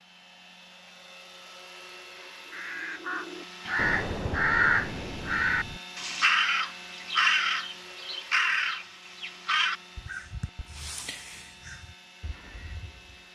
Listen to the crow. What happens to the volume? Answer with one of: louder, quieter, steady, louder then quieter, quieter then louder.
quieter.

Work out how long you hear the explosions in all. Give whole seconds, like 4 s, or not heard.
2 s.